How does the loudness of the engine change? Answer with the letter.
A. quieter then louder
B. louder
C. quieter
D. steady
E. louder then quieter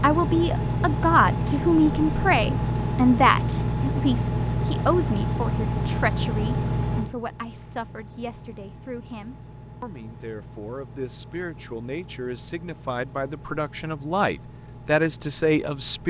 C.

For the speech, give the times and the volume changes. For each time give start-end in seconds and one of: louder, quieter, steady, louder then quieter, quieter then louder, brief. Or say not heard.
0.0-16.0 quieter then louder.